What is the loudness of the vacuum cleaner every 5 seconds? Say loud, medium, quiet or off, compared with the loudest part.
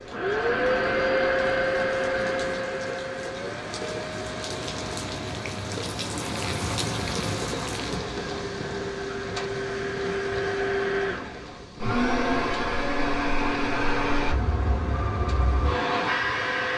loud, medium, loud, loud.